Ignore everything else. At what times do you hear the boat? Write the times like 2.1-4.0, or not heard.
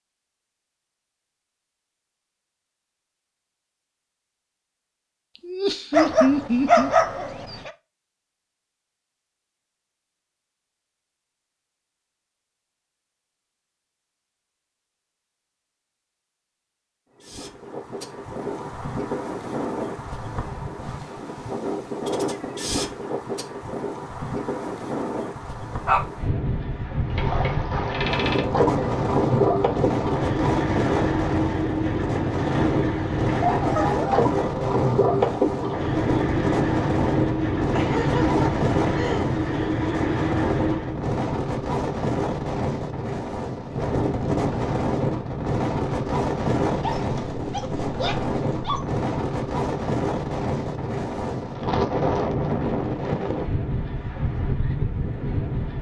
27.1-41.0.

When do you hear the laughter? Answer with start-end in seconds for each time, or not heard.
5.4-6.9, 37.8-39.3.